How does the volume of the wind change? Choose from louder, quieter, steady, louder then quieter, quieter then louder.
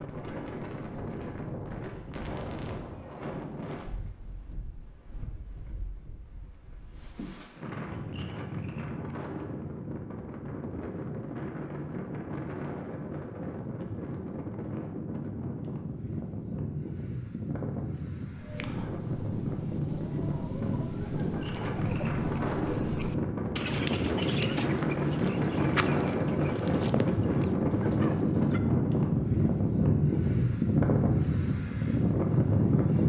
louder.